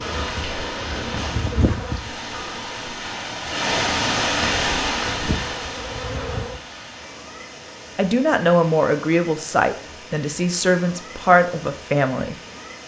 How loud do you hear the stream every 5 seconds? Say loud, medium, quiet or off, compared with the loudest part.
loud, medium, quiet.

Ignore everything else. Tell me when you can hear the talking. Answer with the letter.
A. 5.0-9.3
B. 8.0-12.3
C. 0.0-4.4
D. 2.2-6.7
B.